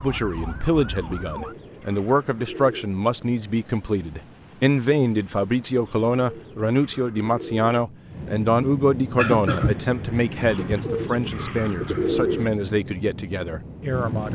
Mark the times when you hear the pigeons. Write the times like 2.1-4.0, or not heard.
1.0-2.9, 5.8-7.7, 10.4-12.5.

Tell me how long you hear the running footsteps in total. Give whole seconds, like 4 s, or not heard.
not heard.